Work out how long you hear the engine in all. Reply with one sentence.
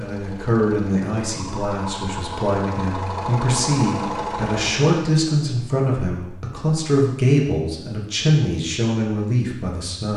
You can hear the engine for 5 seconds altogether.